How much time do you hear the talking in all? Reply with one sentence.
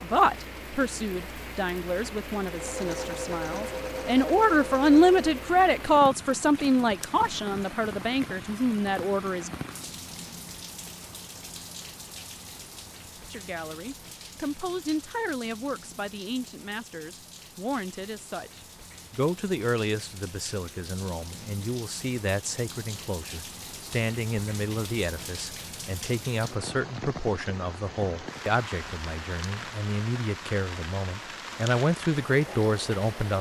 The talking can be heard for 30 seconds in total.